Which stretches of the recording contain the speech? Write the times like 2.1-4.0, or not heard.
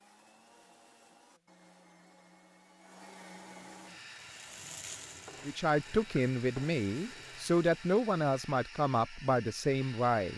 5.5-10.3.